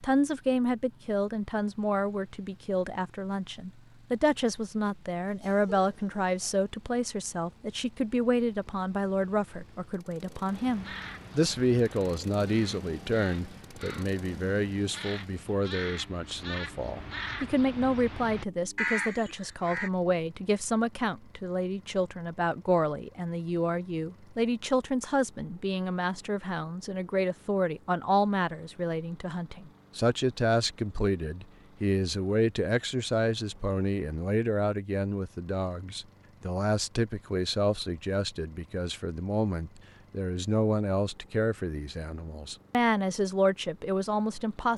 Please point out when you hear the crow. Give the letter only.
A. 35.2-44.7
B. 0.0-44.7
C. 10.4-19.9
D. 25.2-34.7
C.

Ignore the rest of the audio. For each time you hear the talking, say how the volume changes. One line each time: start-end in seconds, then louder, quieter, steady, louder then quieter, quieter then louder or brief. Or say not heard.
0.0-44.7 steady.